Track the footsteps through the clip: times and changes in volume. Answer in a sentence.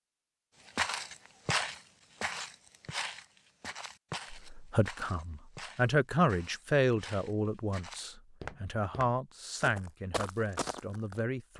The footsteps can be heard from 0.7 to 11.2 s, getting quieter then louder.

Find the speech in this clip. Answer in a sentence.
The speech can be heard from 4.3 to 11.5 s.